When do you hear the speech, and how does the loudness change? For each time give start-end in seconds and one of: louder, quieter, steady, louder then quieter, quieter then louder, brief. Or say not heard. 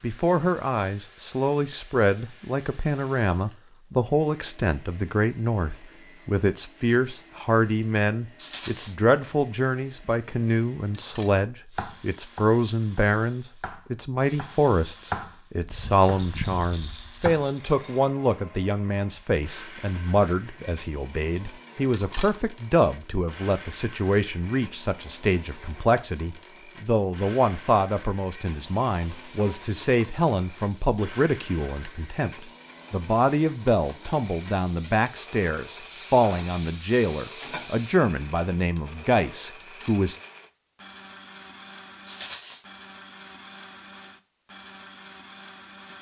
0.0-40.2 steady.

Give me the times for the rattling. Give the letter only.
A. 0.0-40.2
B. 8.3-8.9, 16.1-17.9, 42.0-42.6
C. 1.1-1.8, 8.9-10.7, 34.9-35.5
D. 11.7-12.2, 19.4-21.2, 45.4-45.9
B.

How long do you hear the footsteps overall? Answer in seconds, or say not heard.
not heard.